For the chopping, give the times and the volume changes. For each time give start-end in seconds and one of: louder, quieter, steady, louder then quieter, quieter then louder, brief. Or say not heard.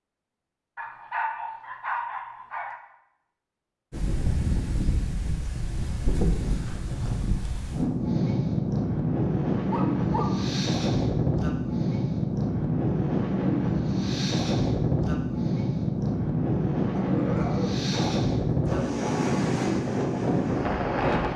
not heard.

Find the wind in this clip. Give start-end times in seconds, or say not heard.
3.9-21.3.